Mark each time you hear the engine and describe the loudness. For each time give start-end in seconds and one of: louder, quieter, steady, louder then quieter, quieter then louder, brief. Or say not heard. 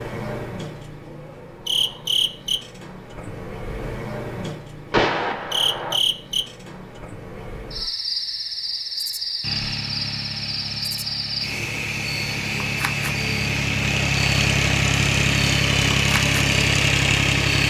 9.4-17.6 louder.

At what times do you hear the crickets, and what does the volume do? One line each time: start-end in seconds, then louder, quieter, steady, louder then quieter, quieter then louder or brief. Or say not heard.
0.0-17.6 steady.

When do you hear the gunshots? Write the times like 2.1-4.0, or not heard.
4.9-6.0.